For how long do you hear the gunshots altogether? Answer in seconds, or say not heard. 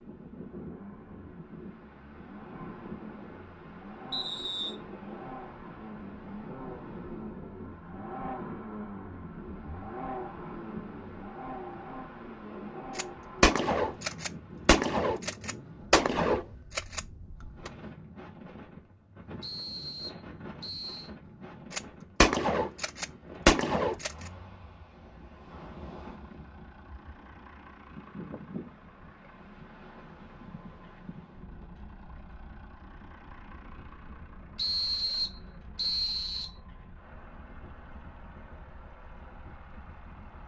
7 s.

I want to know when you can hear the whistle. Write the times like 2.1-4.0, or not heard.
4.1-4.8, 19.4-21.1, 34.5-36.5.